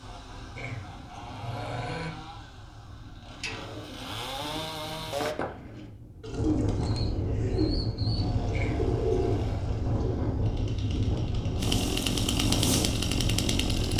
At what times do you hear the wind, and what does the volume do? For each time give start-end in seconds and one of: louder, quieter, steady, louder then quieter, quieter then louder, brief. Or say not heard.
0.0-13.9 louder.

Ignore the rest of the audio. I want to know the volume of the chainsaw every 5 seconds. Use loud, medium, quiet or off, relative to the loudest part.
medium, medium, loud.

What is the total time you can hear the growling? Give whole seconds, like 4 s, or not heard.
3 s.